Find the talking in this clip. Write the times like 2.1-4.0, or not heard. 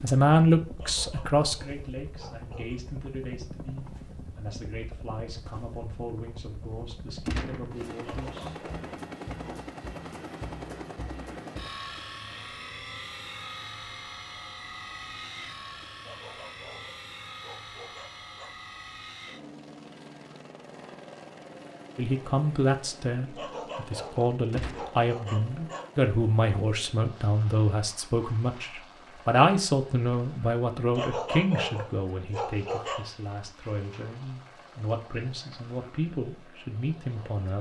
0.0-8.6, 21.9-37.5.